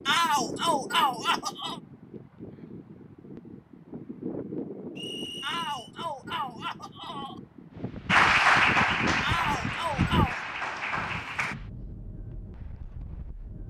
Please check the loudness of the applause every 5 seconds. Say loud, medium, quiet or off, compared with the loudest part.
off, loud, medium.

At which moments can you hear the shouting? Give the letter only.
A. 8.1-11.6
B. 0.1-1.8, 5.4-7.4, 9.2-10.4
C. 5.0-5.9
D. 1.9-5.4
B.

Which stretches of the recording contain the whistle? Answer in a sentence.
The whistle can be heard from 5.0 to 5.9 s.